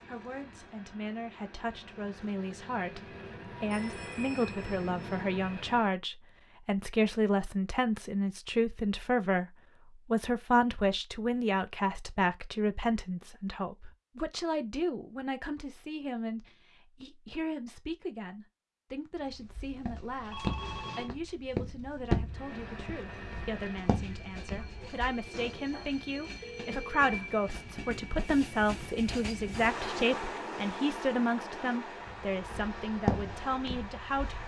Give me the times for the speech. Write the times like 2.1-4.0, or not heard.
0.1-34.4.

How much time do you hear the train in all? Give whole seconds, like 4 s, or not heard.
18 s.